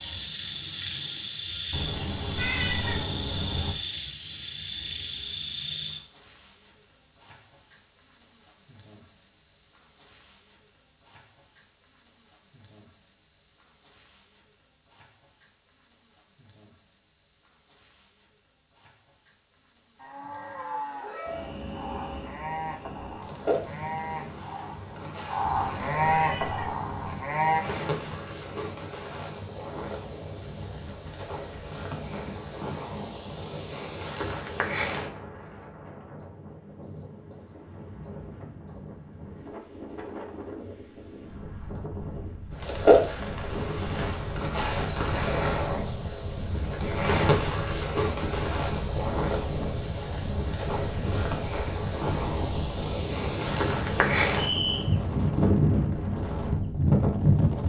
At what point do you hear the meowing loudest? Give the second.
3 s.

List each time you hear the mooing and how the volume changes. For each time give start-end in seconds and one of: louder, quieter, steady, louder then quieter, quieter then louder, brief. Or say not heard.
19.9-27.6 louder.